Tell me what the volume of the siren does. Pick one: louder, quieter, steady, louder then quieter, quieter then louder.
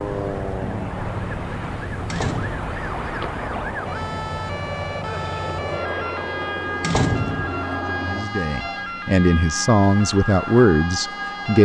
steady.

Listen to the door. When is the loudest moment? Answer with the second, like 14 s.
7 s.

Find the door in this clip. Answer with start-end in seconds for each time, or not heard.
2.1-2.7, 6.8-7.7.